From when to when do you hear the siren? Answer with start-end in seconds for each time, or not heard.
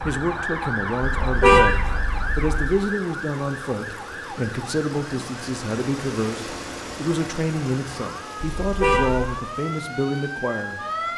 0.0-11.1.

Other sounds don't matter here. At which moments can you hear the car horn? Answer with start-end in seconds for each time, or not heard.
1.0-2.7, 8.6-9.3.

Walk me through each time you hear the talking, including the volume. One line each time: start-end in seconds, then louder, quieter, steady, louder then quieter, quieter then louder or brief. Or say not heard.
0.0-11.1 steady.